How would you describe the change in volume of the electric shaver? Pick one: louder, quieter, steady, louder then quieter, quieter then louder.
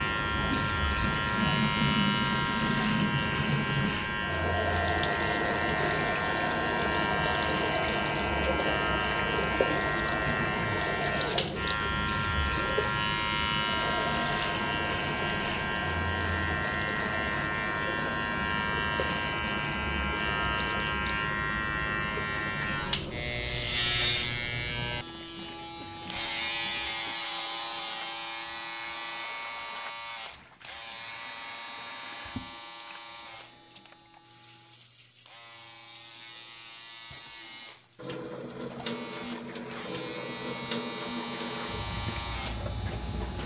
quieter.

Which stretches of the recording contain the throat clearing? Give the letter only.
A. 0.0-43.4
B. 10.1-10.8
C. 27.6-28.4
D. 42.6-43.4
B.